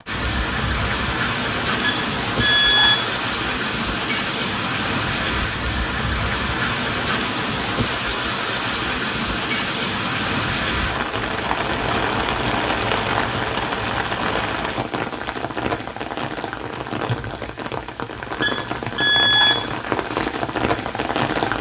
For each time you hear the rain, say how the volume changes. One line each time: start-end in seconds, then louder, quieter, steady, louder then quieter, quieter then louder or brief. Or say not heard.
0.1-21.5 steady.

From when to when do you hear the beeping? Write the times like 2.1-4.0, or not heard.
1.8-3.1, 18.4-19.7.